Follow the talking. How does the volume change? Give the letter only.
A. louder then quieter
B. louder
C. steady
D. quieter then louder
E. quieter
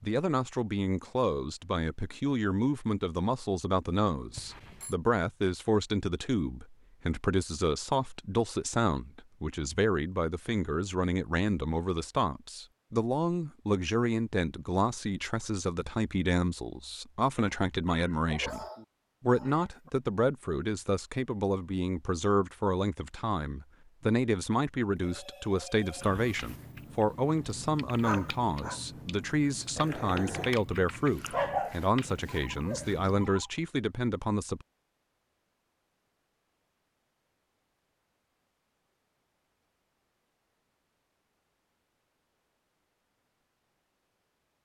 C.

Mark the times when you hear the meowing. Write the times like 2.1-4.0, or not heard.
not heard.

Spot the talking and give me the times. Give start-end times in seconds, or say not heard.
0.0-34.6.